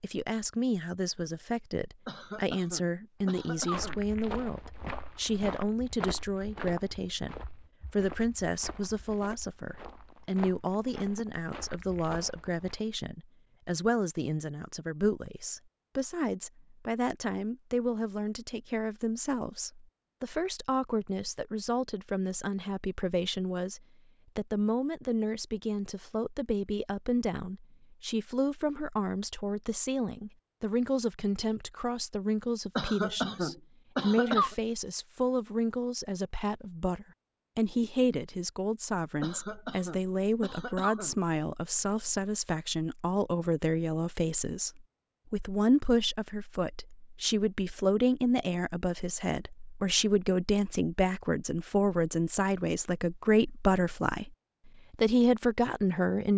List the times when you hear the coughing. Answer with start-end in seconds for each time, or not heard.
2.0-4.0, 32.8-34.5, 39.2-41.1.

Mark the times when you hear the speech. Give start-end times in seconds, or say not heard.
0.0-54.3, 54.9-56.3.